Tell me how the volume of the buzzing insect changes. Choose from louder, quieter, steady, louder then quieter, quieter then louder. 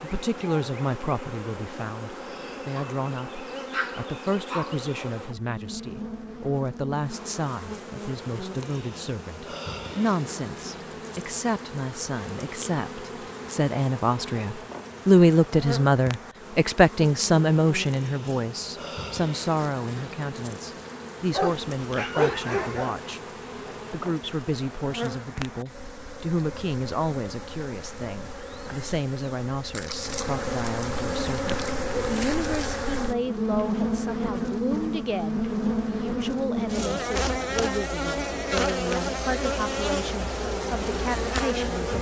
louder.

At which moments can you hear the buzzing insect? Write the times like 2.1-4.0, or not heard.
0.0-41.9.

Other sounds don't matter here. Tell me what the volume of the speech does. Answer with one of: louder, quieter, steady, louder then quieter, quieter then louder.
louder then quieter.